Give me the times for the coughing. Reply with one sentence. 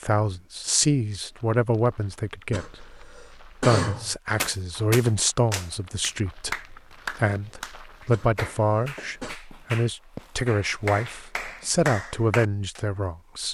You can hear the coughing from 2.5 to 4.2 s and from 8.1 to 9.3 s.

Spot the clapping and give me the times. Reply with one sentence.
The clapping can be heard from 4.3 to 12.8 s.